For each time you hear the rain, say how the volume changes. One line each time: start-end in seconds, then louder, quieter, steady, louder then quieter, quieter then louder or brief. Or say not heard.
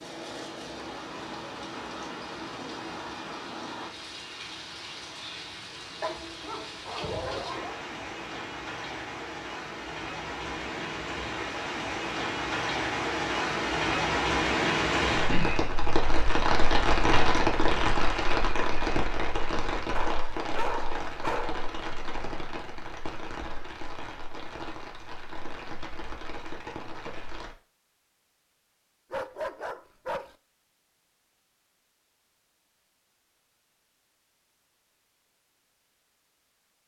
0.0-27.6 louder then quieter.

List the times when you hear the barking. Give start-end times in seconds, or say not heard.
6.0-7.8, 19.9-21.6, 29.1-30.4.